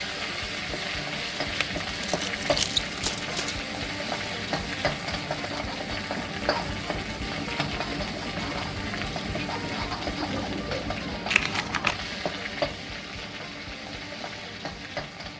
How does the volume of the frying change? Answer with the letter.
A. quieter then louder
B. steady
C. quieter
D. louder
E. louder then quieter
B.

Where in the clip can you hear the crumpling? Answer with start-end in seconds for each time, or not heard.
1.6-3.6, 11.2-11.9.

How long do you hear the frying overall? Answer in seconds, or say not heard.
15 s.